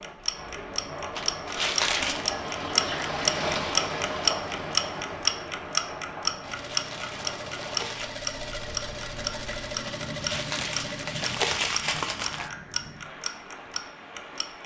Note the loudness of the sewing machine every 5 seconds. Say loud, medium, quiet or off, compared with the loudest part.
off, loud, loud.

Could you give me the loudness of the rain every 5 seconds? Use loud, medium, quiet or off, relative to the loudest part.
loud, medium, medium.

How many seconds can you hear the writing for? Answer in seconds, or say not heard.
not heard.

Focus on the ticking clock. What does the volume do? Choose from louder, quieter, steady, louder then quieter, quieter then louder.
louder then quieter.